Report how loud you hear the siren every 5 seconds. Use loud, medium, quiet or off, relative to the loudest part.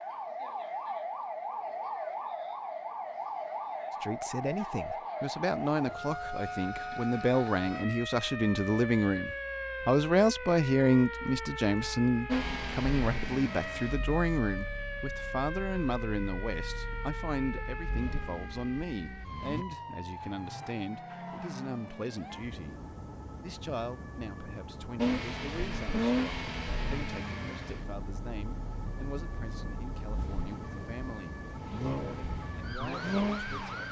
loud, loud, loud, medium, medium, medium, medium.